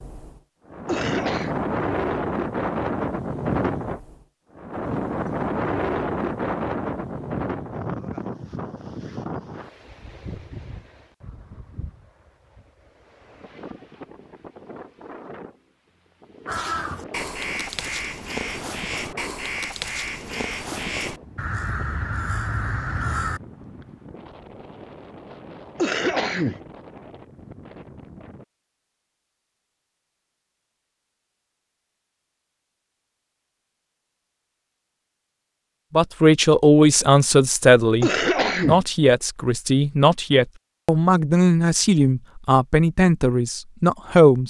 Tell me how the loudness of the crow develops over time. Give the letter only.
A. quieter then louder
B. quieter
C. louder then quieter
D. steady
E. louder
D.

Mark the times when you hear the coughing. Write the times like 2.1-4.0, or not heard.
0.8-1.6, 25.8-26.6, 38.0-38.8.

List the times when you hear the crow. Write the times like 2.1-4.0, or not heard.
16.4-23.4.